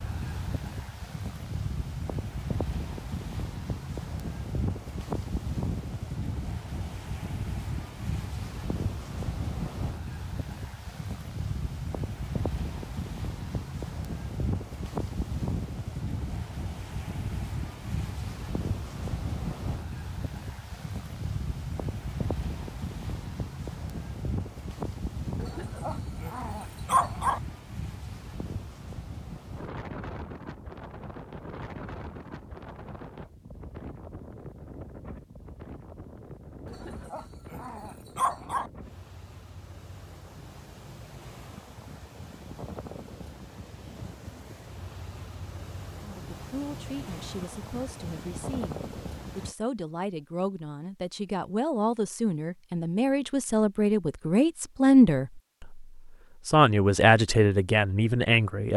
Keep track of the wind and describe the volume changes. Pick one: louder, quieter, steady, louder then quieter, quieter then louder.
quieter.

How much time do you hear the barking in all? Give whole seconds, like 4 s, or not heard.
4 s.